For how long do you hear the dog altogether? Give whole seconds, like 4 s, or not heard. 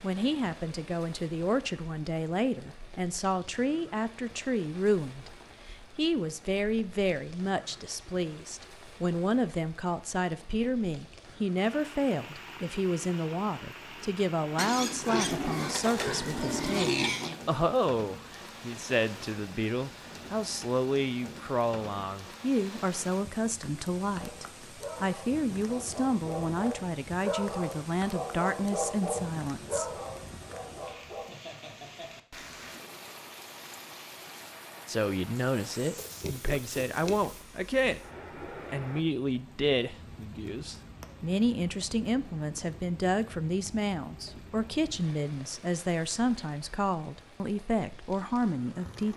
7 s.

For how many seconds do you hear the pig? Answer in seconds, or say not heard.
4 s.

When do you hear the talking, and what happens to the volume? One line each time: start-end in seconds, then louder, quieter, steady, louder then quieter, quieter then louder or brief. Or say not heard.
0.0-29.9 steady
34.9-49.1 steady.